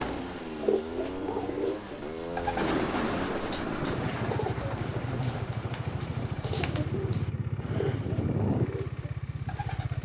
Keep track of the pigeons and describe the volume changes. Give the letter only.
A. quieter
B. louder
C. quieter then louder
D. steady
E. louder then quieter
A.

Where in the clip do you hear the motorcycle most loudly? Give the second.
8 s.